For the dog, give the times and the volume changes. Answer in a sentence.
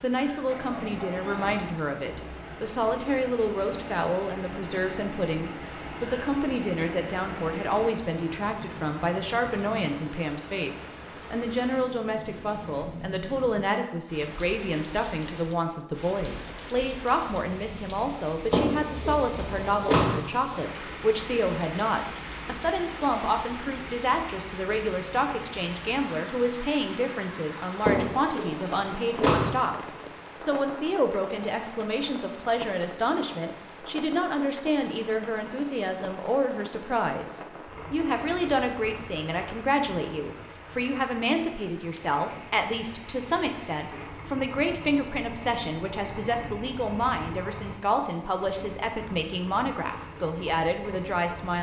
The dog can't be heard in this clip.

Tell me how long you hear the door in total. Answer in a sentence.
The door can be heard for 3 seconds in total.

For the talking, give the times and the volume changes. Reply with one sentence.
The talking can be heard from 0.0 to 51.5 s, at a steady volume.